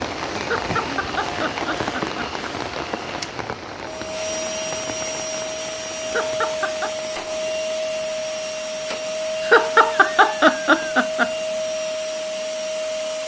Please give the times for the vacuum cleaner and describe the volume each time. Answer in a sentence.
The vacuum cleaner can be heard from 0.0 to 13.2 s, getting louder.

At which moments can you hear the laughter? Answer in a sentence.
You can hear the laughter from 0.4 to 2.8 s, from 6.0 to 7.0 s and from 9.4 to 11.3 s.